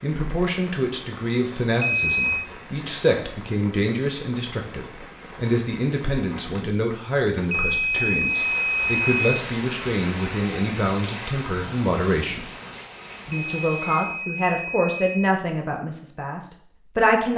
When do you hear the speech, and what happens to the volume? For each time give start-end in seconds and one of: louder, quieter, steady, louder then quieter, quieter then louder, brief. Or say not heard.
0.0-12.5 steady
13.2-17.3 quieter.